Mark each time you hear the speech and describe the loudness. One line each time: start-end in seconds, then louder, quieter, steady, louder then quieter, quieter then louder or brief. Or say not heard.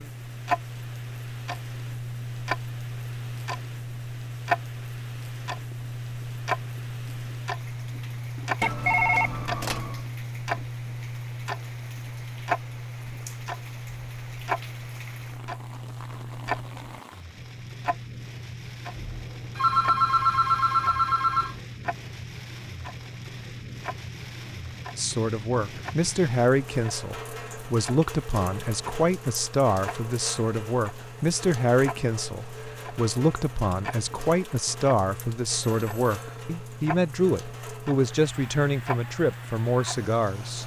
24.9-40.6 steady.